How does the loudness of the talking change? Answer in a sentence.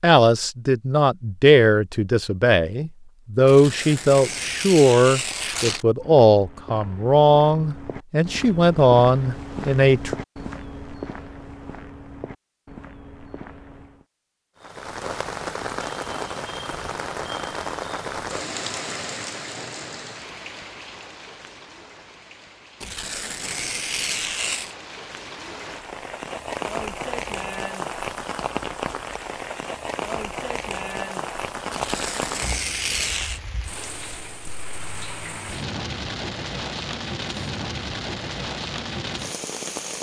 The loudness of the talking stays about the same.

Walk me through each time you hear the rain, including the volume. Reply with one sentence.
The rain can be heard from 14.6 to 39.9 s, getting quieter then louder.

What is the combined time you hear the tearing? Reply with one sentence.
The tearing can be heard for 6 seconds in total.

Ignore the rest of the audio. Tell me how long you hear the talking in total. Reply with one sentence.
The talking can be heard for 10 seconds in total.